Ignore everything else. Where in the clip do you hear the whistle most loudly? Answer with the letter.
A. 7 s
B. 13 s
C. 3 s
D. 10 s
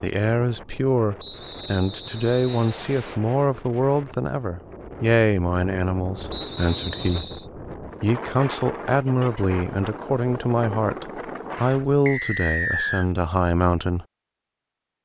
B.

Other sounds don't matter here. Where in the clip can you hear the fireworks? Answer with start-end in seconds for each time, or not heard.
not heard.